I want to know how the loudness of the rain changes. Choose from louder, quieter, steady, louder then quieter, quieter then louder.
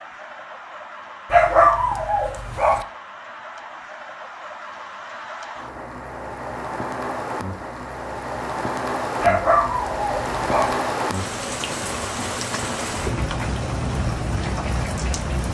louder.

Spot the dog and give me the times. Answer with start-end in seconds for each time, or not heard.
1.3-2.9, 9.2-10.8.